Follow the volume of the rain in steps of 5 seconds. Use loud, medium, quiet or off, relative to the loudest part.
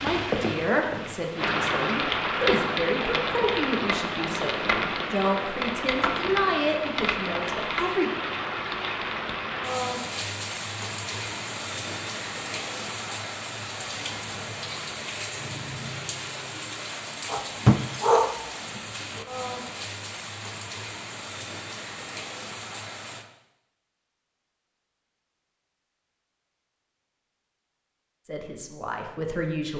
loud, loud, medium, medium, medium, off.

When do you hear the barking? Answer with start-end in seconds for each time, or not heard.
17.3-18.4.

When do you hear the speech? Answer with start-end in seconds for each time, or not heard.
0.0-8.1, 28.2-29.7.